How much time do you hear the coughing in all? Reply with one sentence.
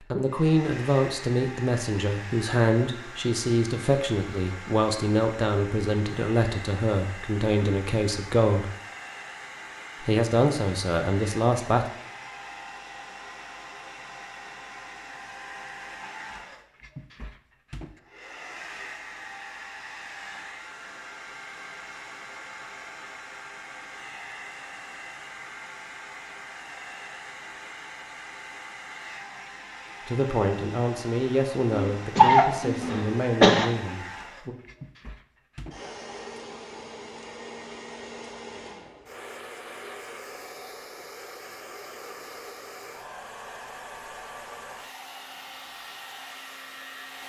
You can hear the coughing for 2 seconds altogether.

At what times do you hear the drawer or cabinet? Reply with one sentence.
You can't hear the drawer or cabinet here.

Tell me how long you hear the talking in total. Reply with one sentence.
The talking can be heard for 15 seconds in total.